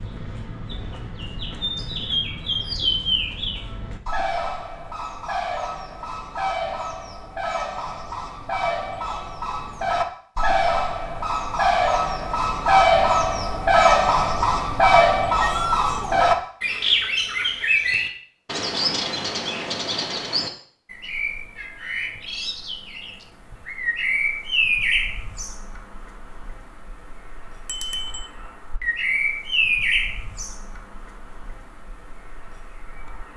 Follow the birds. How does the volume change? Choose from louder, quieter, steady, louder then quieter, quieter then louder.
louder then quieter.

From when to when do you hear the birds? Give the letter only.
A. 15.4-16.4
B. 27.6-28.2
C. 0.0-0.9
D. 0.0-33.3
D.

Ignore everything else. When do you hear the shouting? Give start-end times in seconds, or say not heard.
15.4-16.4.